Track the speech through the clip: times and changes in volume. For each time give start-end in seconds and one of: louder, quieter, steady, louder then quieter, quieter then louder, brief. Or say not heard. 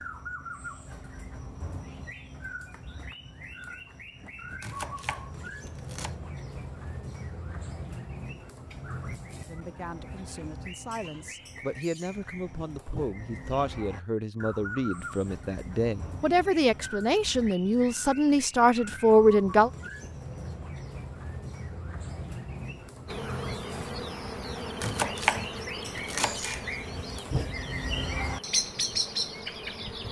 9.4-19.7 louder.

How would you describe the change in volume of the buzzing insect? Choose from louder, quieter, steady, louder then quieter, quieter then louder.
quieter.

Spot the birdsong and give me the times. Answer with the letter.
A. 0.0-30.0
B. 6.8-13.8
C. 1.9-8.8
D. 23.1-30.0
A.